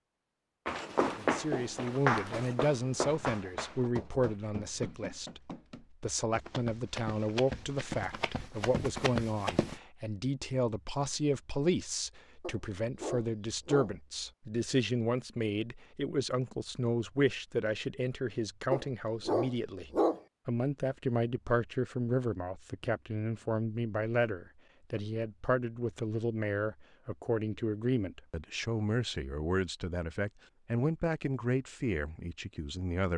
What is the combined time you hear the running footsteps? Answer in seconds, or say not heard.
9 s.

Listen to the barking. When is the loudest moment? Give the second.
20 s.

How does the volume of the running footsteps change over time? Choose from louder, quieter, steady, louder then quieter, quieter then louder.
quieter then louder.